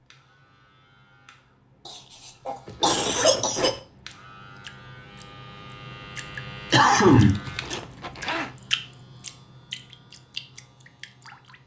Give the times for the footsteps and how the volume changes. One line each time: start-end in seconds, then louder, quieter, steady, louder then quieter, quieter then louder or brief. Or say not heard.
not heard.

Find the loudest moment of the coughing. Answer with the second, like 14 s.
7 s.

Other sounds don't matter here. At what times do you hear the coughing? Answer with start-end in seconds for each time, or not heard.
2.5-3.8, 6.7-7.5.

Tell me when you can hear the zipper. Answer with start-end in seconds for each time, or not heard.
2.6-3.8, 7.1-8.5.